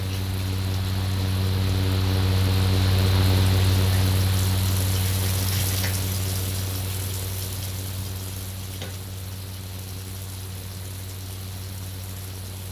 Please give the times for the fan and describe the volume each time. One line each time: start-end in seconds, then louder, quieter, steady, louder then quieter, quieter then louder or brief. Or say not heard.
0.0-12.6 quieter.